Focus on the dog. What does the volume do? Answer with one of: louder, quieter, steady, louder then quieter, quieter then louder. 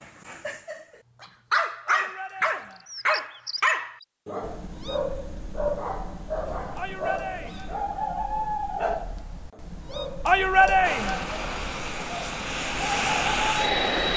quieter.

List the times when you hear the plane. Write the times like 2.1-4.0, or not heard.
10.8-14.1.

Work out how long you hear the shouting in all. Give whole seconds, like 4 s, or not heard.
3 s.